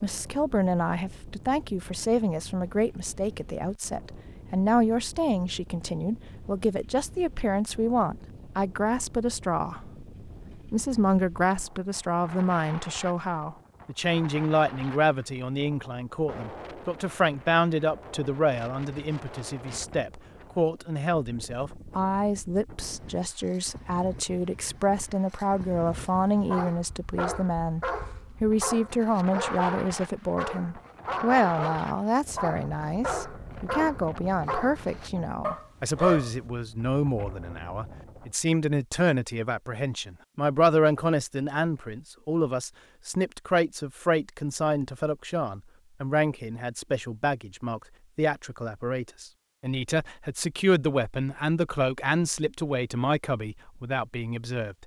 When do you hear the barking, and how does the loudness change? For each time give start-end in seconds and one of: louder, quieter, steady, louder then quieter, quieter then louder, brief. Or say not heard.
26.5-36.4 steady.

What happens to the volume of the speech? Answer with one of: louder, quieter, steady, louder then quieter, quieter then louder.
steady.